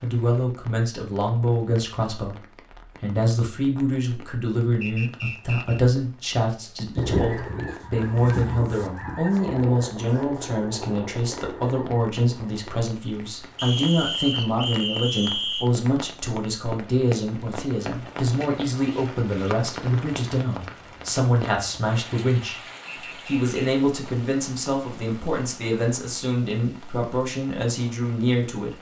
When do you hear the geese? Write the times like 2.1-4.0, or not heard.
7.0-12.8.